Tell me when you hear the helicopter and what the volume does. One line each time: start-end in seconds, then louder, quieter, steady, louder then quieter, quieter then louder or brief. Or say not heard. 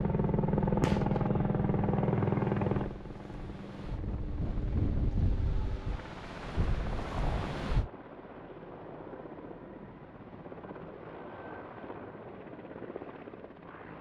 0.0-13.9 quieter.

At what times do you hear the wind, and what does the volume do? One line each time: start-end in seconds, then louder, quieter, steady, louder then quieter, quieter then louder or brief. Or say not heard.
0.0-7.9 quieter then louder.